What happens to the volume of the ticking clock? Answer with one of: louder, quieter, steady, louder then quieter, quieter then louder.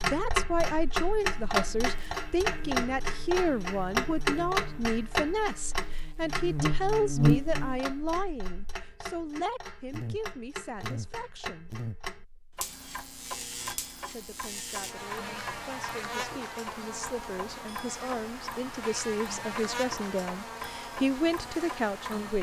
quieter.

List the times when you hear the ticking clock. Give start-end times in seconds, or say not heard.
0.0-22.3.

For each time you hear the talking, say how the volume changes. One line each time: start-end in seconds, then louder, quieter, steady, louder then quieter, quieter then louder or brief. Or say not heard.
0.0-11.7 quieter
14.1-22.3 louder.